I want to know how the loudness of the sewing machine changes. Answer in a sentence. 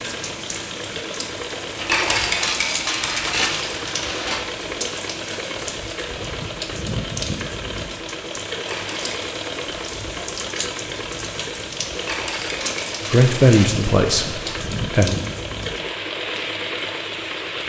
The volume of the sewing machine stays about the same.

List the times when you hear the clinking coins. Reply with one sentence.
The clinking coins can be heard from 1.8 to 4.4 s, from 8.6 to 9.2 s and from 11.9 to 14.6 s.